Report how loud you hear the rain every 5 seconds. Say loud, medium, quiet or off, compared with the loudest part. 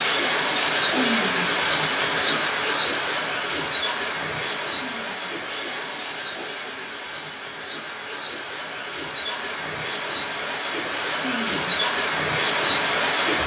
loud, medium, loud.